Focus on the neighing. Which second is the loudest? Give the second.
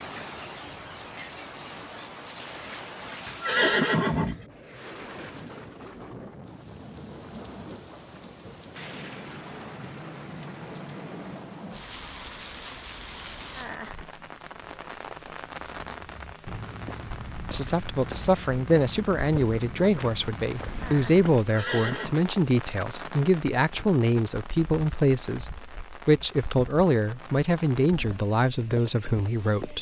4 s.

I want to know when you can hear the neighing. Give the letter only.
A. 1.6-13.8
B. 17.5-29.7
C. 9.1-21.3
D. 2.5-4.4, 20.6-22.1
D.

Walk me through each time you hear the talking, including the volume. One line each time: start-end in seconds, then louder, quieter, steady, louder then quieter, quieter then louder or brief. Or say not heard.
17.5-29.7 steady.